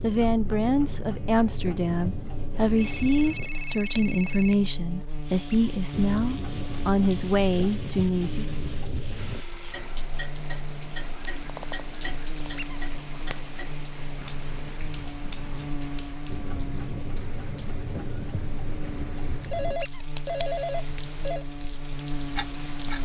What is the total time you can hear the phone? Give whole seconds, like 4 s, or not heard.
5 s.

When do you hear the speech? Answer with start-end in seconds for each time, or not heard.
0.0-8.4.